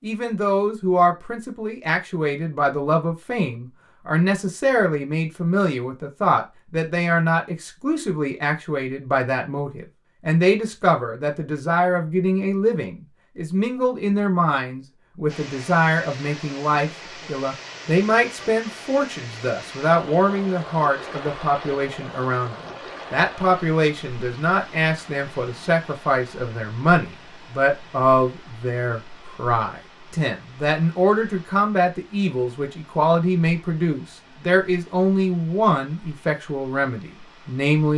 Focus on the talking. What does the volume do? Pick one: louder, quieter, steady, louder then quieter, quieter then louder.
steady.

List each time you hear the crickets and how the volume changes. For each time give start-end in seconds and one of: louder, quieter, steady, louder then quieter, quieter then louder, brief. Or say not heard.
not heard.